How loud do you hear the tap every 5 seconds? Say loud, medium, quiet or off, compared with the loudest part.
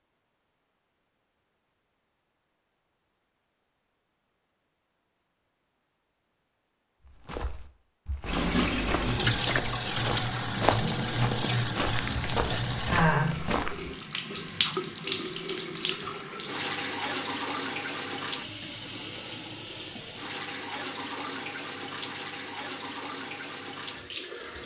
off, loud, loud, medium, medium.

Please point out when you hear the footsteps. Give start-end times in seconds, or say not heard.
7.0-13.9.